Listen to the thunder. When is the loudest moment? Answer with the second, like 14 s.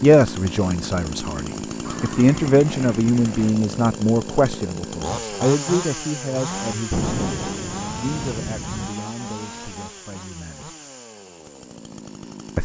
7 s.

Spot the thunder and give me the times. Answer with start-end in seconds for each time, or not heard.
6.9-8.9.